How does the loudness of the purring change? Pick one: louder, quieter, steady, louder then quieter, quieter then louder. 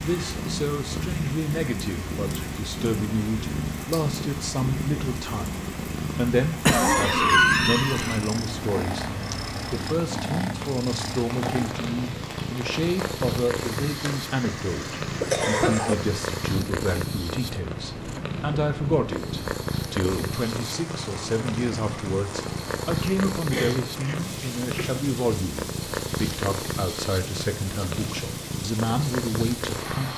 steady.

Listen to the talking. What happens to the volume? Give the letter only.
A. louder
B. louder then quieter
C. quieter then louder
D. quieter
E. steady
E.